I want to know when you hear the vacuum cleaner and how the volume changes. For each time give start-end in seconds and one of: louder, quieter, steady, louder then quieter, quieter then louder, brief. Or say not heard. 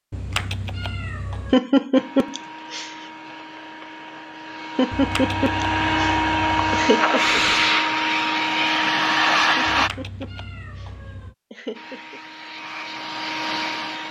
1.9-9.9 louder
11.7-14.0 brief.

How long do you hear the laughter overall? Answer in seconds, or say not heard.
6 s.